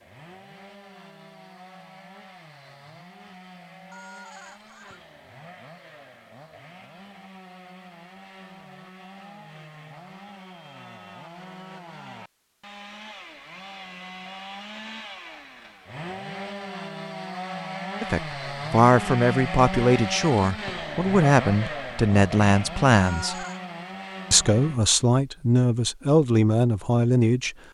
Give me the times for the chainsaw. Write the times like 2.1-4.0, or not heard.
0.0-24.8.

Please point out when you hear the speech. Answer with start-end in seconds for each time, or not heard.
18.0-23.4, 24.3-27.6.